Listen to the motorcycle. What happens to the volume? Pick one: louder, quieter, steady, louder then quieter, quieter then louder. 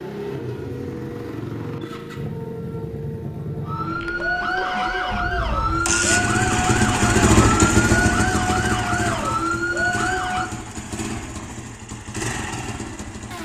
louder then quieter.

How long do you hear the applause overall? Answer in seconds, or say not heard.
not heard.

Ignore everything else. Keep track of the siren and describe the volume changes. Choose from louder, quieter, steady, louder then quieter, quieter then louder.
louder.